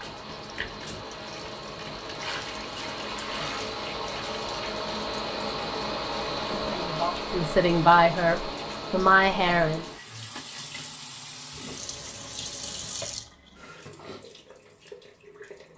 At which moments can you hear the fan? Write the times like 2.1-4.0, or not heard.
0.0-10.0.